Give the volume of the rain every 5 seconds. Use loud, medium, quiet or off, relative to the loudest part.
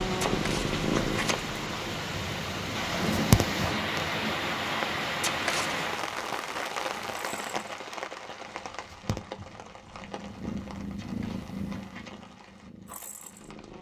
loud, loud, quiet.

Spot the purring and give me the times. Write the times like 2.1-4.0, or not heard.
0.0-3.8, 6.9-13.7.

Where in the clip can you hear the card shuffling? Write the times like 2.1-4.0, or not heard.
0.2-1.4, 5.2-5.9, 10.9-12.2.